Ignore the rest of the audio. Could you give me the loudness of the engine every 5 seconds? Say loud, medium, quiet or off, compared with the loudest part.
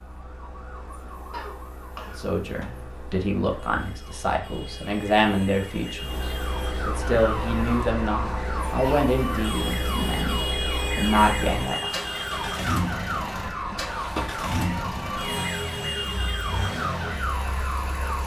quiet, loud, loud, loud.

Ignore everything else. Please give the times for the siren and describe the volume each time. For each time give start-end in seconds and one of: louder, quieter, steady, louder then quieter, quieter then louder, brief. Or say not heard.
0.0-18.2 louder.